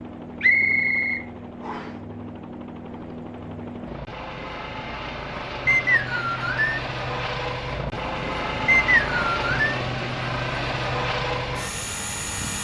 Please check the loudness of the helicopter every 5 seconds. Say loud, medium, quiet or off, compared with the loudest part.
medium, loud, loud.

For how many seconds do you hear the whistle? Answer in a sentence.
The whistle can be heard for 4 seconds in total.